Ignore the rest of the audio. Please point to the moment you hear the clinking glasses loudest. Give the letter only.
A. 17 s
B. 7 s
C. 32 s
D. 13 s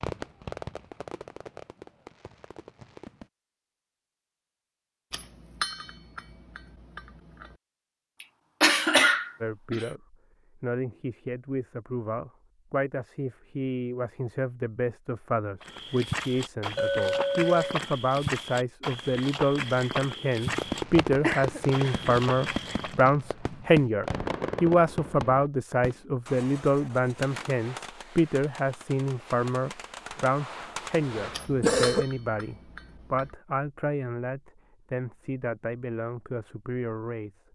A.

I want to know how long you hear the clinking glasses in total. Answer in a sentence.
You can hear the clinking glasses for 5 seconds altogether.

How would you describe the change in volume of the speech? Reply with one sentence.
The loudness of the speech goes up, then down.